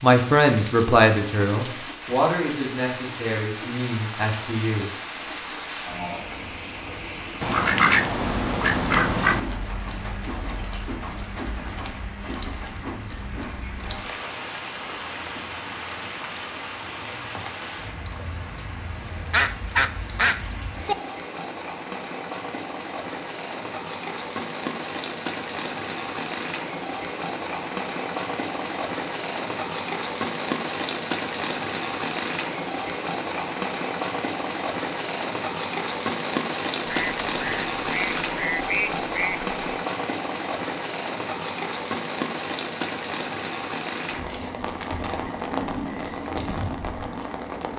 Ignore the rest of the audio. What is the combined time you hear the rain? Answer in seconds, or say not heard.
48 s.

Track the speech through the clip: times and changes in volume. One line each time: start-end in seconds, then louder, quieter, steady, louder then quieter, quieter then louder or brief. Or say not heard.
0.0-4.9 quieter.